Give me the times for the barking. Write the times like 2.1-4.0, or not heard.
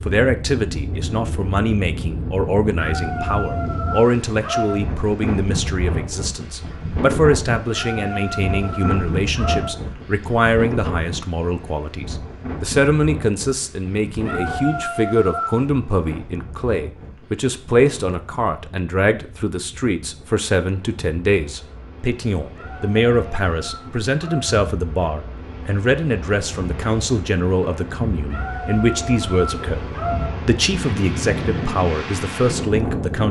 2.8-4.8, 7.7-9.7, 14.2-15.7, 22.6-24.6, 28.3-30.3.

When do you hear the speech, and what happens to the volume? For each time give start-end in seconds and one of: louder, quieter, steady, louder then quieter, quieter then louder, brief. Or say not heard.
0.0-29.8 steady
30.4-33.2 brief.